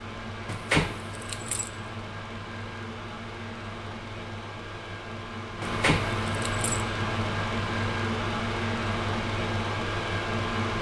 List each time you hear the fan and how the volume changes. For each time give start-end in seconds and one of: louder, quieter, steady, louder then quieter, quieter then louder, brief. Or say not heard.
0.0-10.7 louder.